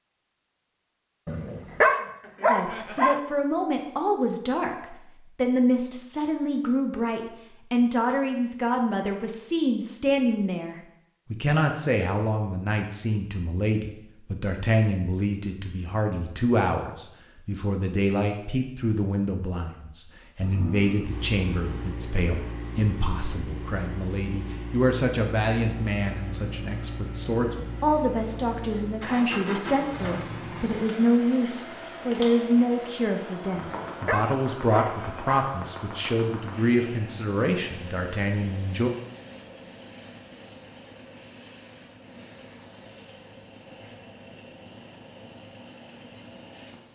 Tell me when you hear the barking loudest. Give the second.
2 s.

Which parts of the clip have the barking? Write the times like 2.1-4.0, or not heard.
1.2-3.2, 33.5-35.5.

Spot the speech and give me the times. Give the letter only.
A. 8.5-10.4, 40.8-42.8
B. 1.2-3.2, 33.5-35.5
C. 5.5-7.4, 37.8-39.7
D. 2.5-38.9
D.